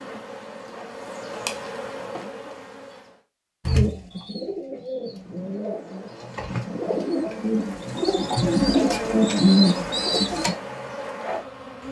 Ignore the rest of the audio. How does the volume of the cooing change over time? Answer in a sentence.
The loudness of the cooing goes up.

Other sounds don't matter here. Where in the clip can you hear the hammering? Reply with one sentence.
The hammering can't be heard in this clip.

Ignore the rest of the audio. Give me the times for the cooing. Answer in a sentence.
You can hear the cooing from 3.6 to 10.6 s.